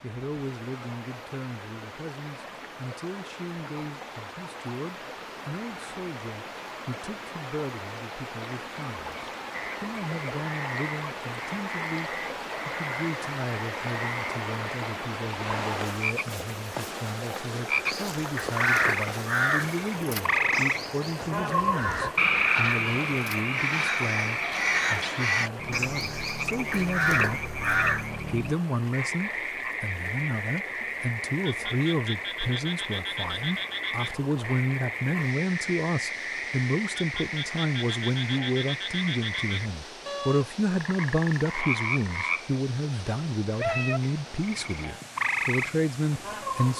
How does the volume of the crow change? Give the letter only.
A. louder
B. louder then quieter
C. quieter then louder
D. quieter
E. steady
C.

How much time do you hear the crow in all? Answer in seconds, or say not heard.
10 s.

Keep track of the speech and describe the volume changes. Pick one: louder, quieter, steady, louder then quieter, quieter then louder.
louder.